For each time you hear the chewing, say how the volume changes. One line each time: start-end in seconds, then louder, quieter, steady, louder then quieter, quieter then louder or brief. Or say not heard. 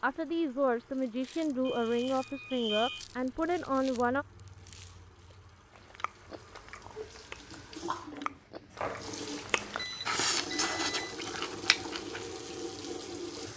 0.9-12.2 louder.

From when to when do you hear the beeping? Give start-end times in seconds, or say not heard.
1.6-3.0, 9.8-11.2.